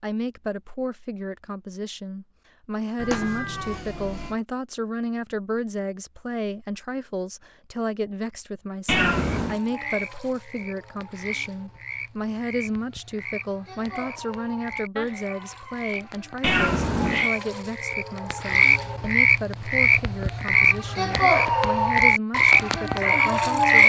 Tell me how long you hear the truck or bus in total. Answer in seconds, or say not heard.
not heard.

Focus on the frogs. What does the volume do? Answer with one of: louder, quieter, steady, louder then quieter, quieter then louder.
louder.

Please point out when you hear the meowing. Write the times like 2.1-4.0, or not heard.
3.0-4.3, 8.8-9.6, 16.4-17.3.